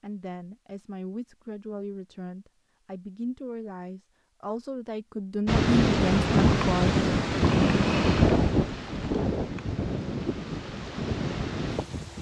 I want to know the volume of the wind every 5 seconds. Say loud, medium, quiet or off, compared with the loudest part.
off, loud, medium.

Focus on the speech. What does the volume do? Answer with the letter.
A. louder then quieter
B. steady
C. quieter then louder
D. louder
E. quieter
D.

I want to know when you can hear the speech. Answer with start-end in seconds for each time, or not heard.
0.0-7.0.